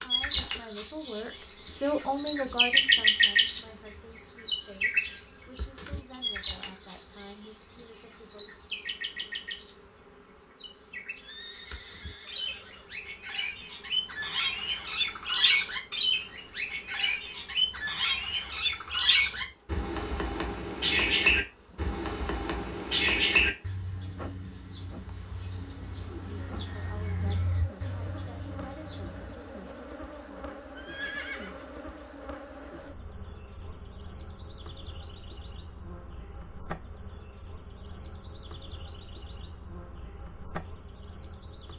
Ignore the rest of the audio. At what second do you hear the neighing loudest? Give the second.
31 s.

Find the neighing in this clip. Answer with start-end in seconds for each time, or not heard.
11.2-12.9, 30.8-31.8.